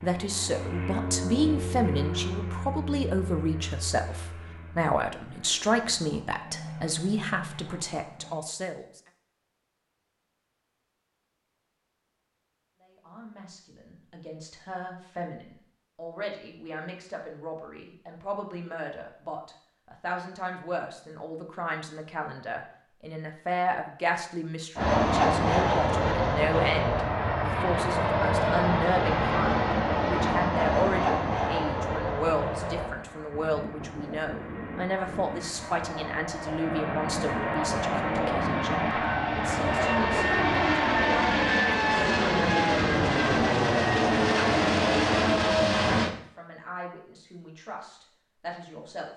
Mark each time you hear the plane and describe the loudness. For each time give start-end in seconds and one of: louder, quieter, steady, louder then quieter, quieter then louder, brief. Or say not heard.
0.0-8.4 quieter then louder
24.8-46.1 quieter then louder.